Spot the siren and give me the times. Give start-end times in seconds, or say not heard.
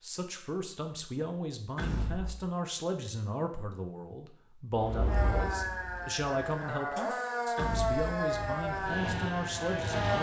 5.0-10.1.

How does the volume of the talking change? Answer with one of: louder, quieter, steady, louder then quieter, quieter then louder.
steady.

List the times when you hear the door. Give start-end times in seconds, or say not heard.
1.8-2.4, 7.5-8.1.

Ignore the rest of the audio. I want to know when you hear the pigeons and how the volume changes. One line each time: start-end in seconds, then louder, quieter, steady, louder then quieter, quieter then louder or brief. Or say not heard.
not heard.